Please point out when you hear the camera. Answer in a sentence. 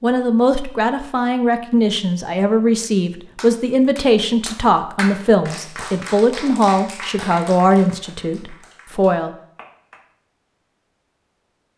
The camera can't be heard in this clip.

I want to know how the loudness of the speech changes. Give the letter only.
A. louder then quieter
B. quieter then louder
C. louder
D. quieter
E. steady
E.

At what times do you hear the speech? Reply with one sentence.
The speech can be heard from 0.0 to 9.3 s.